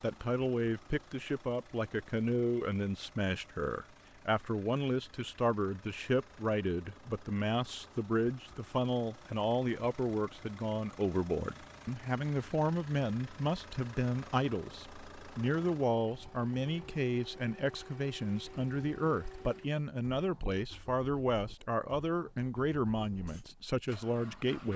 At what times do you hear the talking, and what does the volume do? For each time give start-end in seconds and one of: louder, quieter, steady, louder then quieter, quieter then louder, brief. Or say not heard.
0.0-24.7 steady.